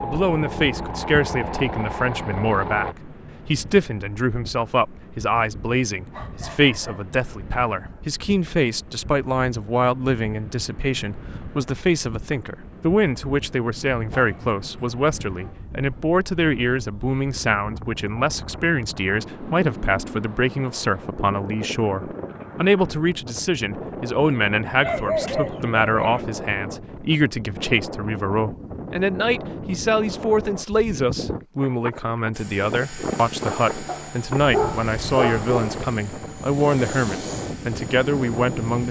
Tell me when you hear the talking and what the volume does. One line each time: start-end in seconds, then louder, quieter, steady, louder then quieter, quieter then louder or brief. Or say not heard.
0.0-38.8 steady.